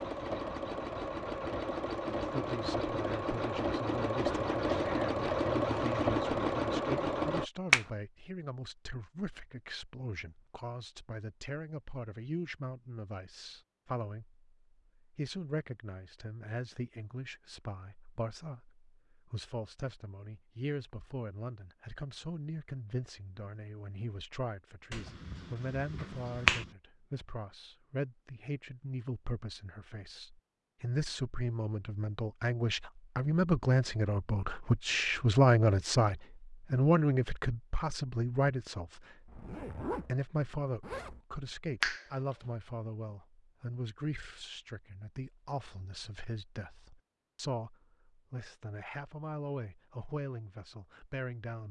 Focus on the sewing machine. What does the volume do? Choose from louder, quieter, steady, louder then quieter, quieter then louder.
louder.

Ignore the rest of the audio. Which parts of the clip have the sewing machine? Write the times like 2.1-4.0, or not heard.
0.0-7.5.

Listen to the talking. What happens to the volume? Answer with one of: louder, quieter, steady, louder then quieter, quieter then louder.
louder then quieter.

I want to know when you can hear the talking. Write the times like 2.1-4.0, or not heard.
2.0-51.6.